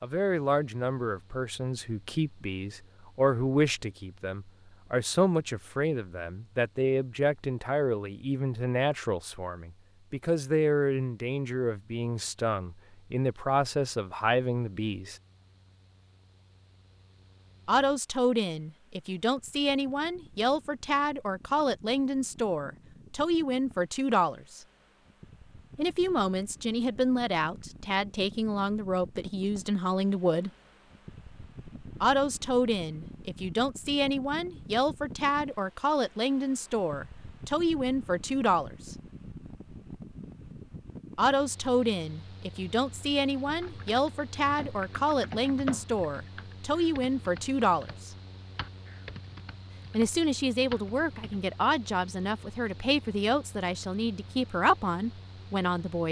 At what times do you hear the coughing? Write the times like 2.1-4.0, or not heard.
not heard.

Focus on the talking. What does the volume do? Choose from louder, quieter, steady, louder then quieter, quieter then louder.
steady.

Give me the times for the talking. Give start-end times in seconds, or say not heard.
0.0-15.2, 17.6-24.6, 25.8-30.5, 32.0-39.0, 41.1-48.1, 49.9-56.0.